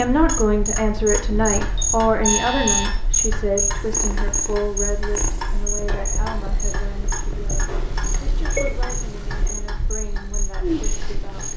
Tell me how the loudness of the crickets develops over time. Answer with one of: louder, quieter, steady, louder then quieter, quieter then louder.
quieter.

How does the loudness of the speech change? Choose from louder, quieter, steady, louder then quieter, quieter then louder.
quieter.